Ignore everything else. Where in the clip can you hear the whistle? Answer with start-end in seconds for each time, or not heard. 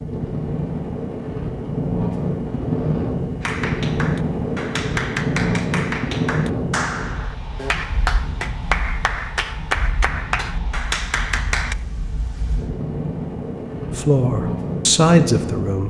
not heard.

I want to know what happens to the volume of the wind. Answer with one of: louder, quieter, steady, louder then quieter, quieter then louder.
quieter then louder.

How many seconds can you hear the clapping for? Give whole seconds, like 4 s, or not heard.
8 s.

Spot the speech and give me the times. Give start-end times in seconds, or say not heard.
13.9-15.8.